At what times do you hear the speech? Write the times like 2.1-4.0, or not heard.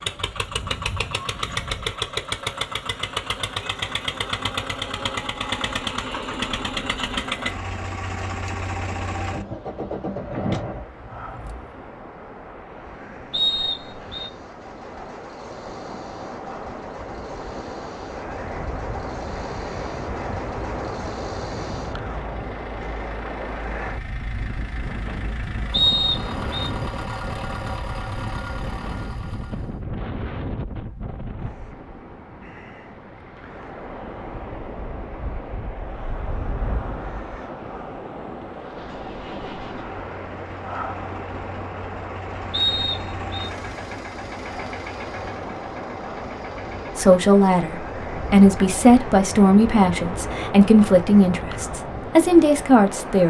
47.0-53.2.